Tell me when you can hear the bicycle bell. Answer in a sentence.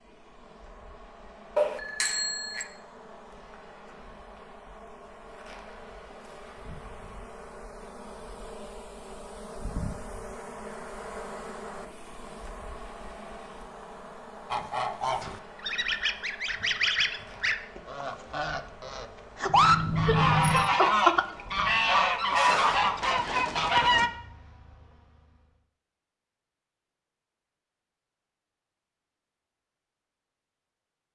You can hear the bicycle bell from 1.6 to 2.6 s and from 19.4 to 20.7 s.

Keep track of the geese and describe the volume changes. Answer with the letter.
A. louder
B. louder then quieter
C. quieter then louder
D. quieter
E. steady
A.